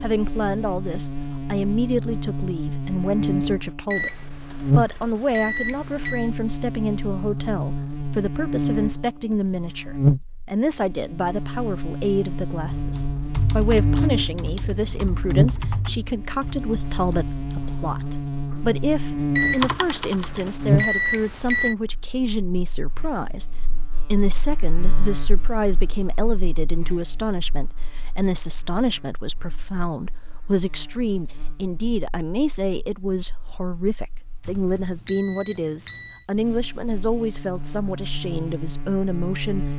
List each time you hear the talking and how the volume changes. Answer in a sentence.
The talking can be heard from 0.0 to 39.6 s, at a steady volume.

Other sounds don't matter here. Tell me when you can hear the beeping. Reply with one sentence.
The beeping can be heard from 3.9 to 6.3 s, from 19.4 to 21.8 s and from 34.5 to 36.2 s.